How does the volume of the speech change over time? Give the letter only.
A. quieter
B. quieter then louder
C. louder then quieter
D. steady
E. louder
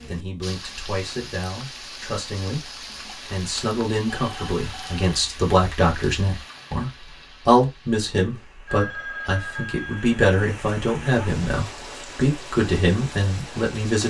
E.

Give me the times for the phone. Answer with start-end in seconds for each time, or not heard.
4.1-5.2, 8.7-10.2.